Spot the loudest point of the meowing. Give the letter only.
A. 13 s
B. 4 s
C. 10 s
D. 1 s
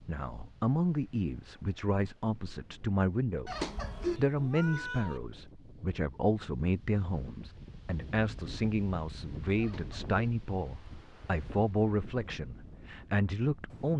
B.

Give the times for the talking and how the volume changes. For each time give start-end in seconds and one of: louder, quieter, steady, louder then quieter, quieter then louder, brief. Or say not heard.
0.1-13.9 steady.